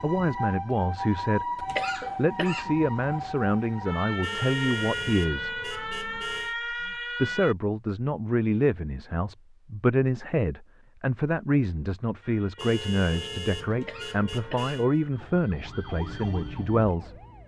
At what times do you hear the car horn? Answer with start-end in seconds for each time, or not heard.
4.2-6.5, 12.6-14.8.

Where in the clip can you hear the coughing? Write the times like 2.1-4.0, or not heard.
1.6-2.8, 13.7-15.0.